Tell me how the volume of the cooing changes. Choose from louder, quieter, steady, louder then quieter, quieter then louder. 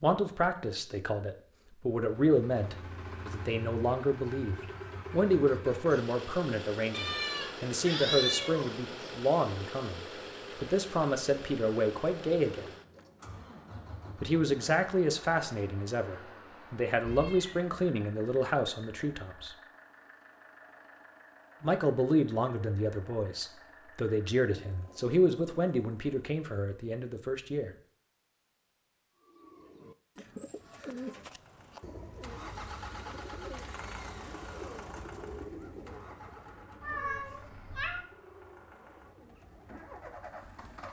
quieter.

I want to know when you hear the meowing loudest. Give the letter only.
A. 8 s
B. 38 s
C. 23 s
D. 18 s
A.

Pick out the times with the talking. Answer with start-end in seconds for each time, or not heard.
0.0-12.7, 14.2-19.6, 21.6-27.7.